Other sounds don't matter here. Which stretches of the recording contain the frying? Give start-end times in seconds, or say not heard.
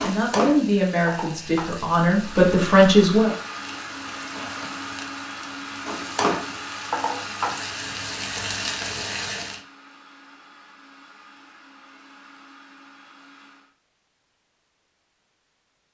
0.0-9.6.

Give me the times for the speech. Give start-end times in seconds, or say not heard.
0.0-3.3.